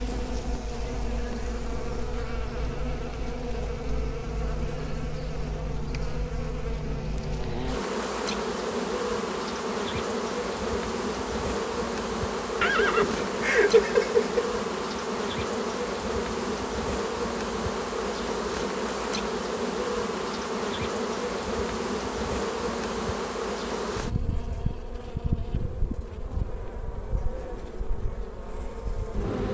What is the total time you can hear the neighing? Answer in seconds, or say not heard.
2 s.